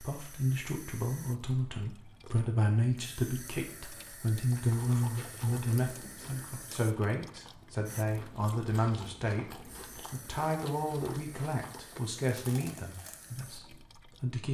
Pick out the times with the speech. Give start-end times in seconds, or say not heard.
0.0-14.4.